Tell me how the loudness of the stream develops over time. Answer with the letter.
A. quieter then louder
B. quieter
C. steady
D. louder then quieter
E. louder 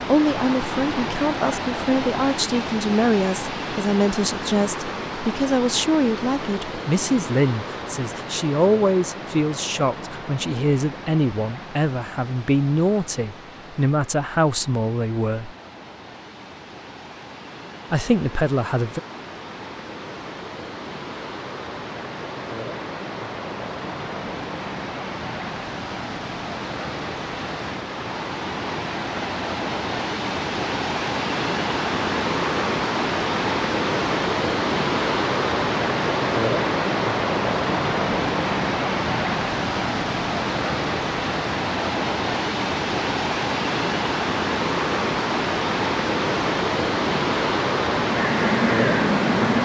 A.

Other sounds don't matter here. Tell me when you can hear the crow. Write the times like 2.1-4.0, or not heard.
48.0-49.6.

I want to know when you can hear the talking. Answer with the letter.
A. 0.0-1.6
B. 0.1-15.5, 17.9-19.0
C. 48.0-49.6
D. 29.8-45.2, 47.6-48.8
B.